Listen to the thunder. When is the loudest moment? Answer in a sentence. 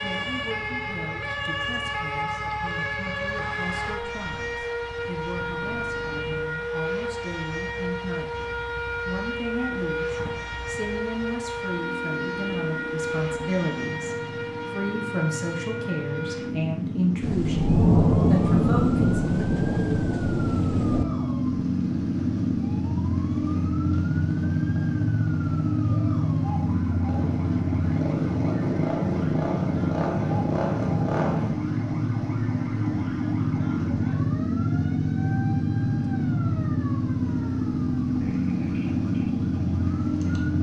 The volume of the thunder peaks at 18 seconds.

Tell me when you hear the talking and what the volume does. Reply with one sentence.
The talking can be heard from 0.0 to 19.1 s, getting louder.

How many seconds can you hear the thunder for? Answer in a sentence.
The thunder can be heard for 4 seconds in total.